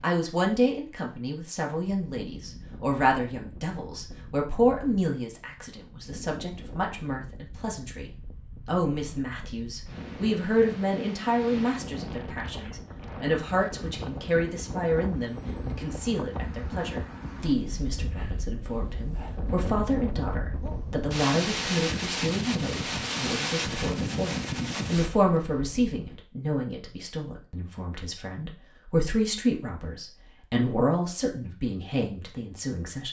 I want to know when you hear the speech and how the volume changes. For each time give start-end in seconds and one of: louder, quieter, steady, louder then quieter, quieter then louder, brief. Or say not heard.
0.0-33.0 steady.